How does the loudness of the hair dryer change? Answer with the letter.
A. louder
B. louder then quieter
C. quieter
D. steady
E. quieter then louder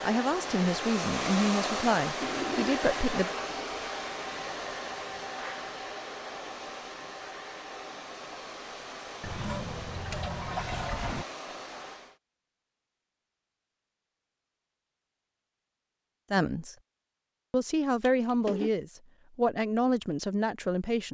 C.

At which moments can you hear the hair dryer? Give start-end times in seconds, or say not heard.
0.0-12.2.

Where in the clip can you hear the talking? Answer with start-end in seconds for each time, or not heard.
0.0-3.4, 16.3-16.8, 17.5-21.1.